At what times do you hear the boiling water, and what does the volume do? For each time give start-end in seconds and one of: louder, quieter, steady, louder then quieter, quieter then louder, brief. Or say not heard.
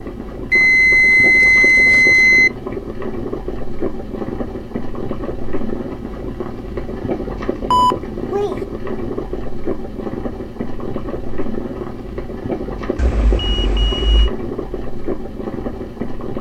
0.0-16.3 steady.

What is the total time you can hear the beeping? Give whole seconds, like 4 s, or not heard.
4 s.